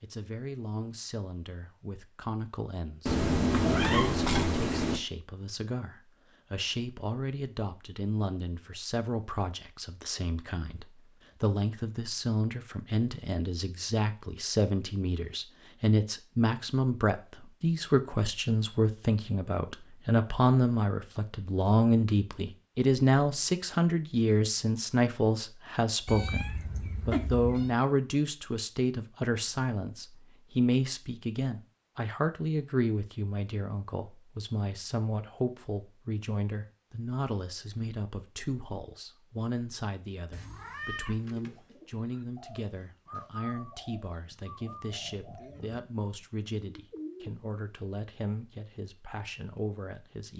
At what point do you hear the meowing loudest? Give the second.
4 s.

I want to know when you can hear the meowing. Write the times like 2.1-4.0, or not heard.
3.0-5.0, 26.1-27.7, 40.3-41.7.